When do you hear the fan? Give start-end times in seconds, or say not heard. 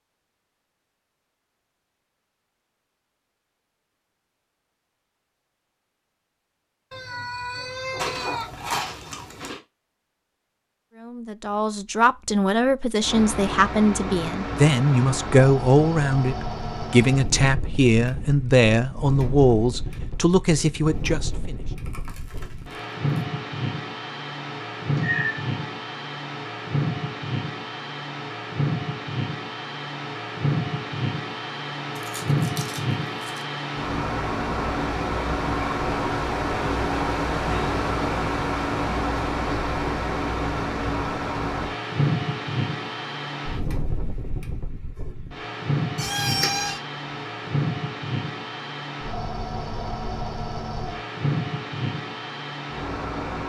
13.0-53.4.